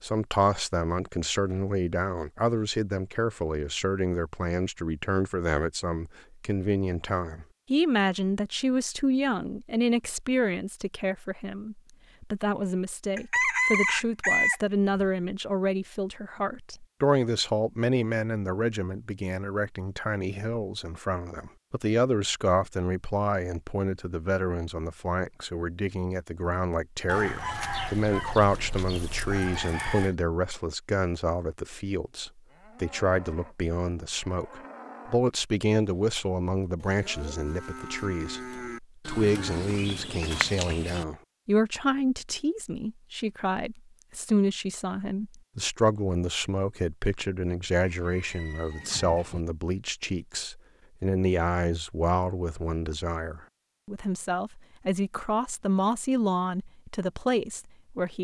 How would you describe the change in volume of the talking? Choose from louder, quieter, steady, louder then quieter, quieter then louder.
steady.